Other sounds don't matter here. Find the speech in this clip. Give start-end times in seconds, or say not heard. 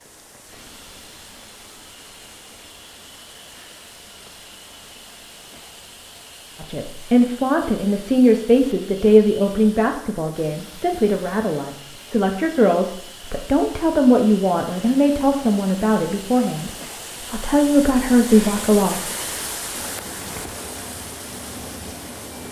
6.6-19.0.